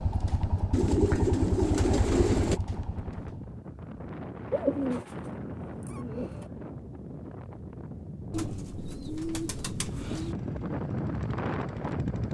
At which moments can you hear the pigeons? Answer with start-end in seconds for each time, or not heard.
0.7-2.6, 4.5-6.5, 8.3-10.3.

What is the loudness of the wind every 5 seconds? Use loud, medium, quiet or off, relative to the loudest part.
medium, medium, loud.